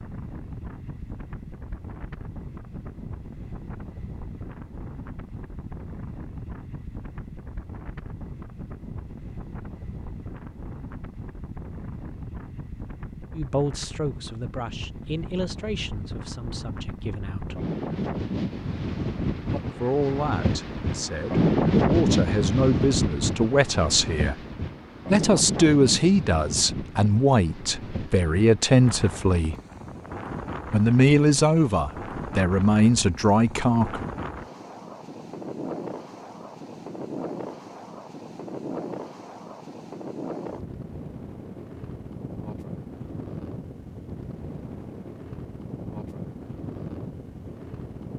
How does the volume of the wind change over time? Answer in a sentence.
The volume of the wind goes up, then down.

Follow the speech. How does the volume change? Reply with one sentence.
The loudness of the speech goes up.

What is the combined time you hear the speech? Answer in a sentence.
The speech can be heard for 17 seconds in total.